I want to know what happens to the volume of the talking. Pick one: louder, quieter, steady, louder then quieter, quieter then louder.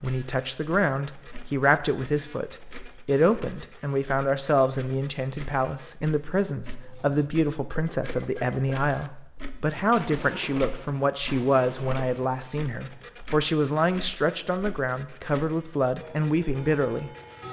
steady.